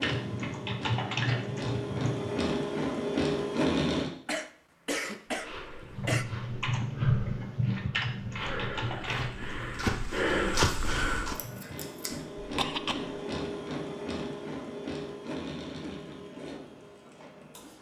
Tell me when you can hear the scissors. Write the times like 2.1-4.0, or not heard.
11.3-12.1.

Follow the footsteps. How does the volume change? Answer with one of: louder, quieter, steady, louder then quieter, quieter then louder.
louder.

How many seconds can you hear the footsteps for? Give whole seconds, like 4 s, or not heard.
6 s.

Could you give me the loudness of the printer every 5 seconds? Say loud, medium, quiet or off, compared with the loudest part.
loud, off, medium, medium.